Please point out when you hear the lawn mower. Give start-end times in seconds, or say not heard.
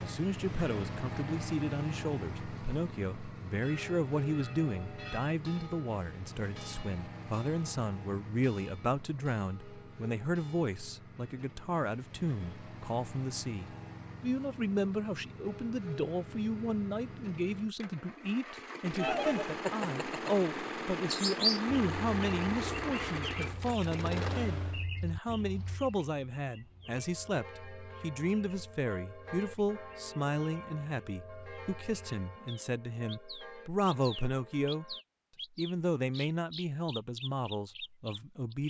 0.0-24.9.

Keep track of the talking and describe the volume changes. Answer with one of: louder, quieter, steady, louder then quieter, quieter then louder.
steady.